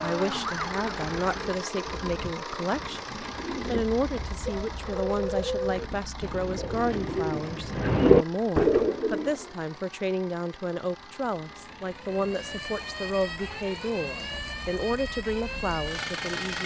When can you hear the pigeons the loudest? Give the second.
8 s.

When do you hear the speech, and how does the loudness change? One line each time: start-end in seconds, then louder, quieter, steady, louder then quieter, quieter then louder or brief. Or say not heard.
0.0-16.6 steady.